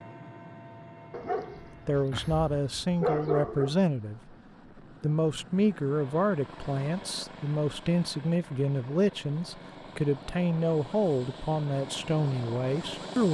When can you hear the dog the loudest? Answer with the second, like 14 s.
3 s.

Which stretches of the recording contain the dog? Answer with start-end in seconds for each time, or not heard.
1.1-3.8.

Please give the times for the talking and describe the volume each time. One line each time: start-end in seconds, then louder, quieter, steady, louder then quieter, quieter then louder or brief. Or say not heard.
1.9-4.3 brief
5.0-13.2 steady.